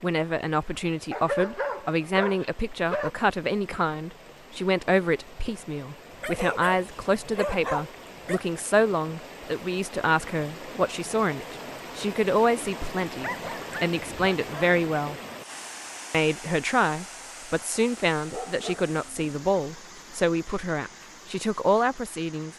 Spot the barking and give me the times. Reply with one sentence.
You can hear the barking from 1.1 to 3.1 s, from 6.1 to 8.4 s, from 13.2 to 14.7 s and from 18.3 to 19.4 s.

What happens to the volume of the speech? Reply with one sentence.
The loudness of the speech stays about the same.